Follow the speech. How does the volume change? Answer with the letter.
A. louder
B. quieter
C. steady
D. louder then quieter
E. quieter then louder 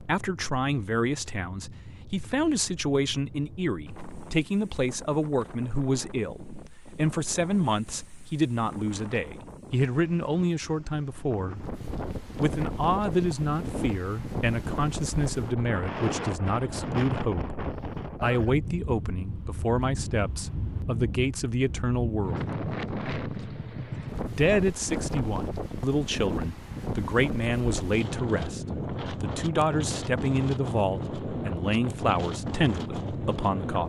C.